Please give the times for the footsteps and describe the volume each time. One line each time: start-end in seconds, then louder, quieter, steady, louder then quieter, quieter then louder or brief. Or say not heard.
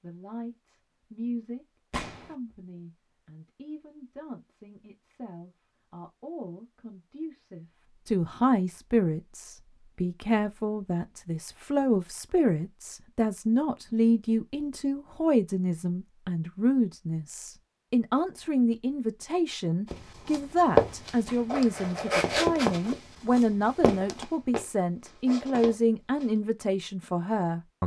19.9-26.3 quieter.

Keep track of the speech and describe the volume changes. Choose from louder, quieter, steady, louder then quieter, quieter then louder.
louder.